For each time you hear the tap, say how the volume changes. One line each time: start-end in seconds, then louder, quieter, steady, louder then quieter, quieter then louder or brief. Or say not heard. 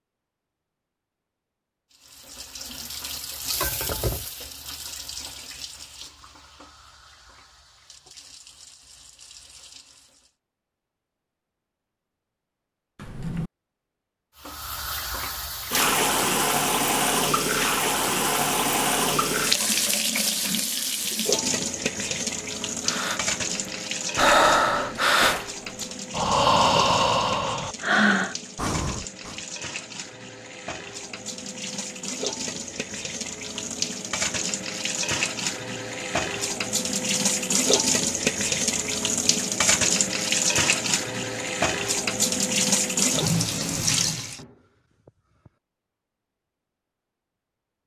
1.9-10.3 quieter
14.4-44.4 quieter then louder.